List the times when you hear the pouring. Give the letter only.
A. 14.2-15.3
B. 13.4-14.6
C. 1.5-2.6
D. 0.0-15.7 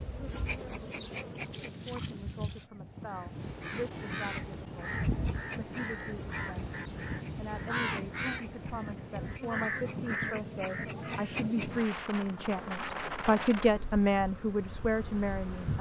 C.